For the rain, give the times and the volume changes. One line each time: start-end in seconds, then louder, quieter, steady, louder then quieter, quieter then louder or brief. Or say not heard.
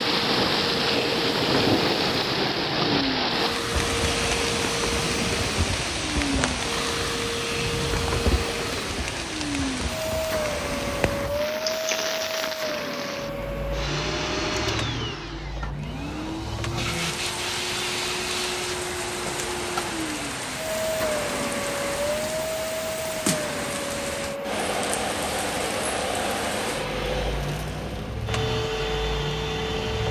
0.0-30.0 quieter.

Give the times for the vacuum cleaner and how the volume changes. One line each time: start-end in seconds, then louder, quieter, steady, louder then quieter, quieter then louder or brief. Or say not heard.
0.0-30.0 steady.